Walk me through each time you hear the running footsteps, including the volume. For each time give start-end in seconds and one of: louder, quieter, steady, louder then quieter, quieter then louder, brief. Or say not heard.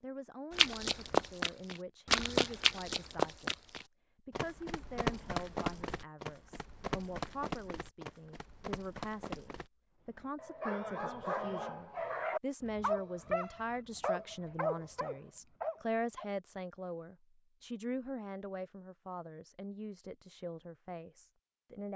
0.6-9.7 quieter.